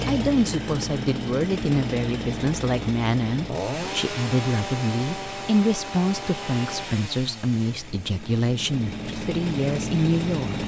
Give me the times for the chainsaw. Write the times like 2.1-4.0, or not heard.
0.0-10.6.